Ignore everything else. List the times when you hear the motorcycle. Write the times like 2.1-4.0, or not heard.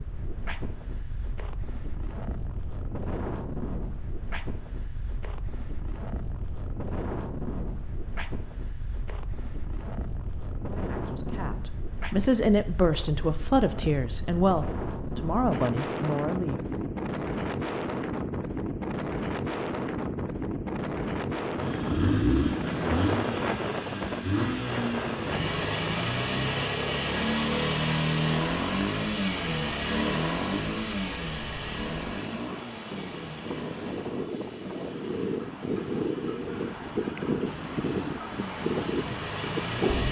21.6-40.0.